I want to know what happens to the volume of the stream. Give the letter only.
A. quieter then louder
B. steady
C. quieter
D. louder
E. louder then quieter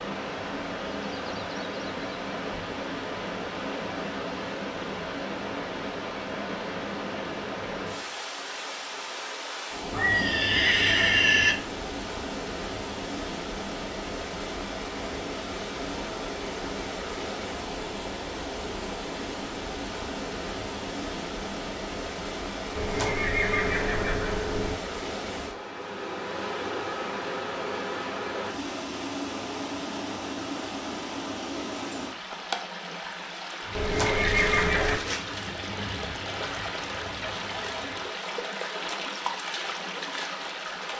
B.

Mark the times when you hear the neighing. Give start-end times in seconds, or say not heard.
9.9-11.6, 22.8-24.8, 33.8-35.0.